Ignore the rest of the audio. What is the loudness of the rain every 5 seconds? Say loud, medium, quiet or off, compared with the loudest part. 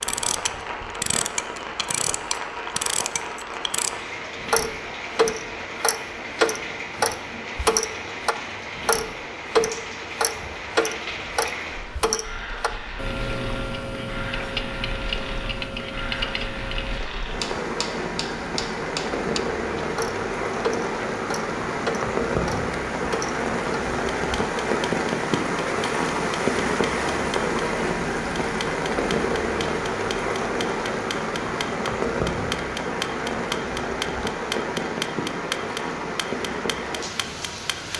medium, medium, medium, medium, loud, loud, loud, medium.